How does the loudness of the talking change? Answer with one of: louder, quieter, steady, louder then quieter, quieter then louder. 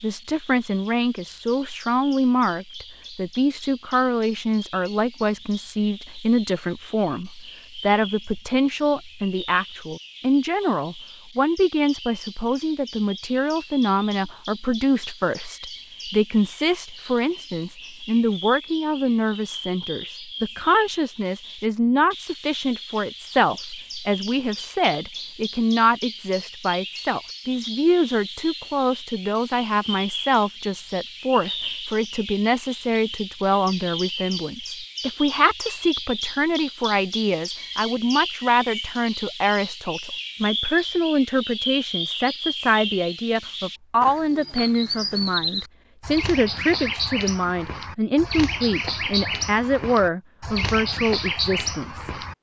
steady.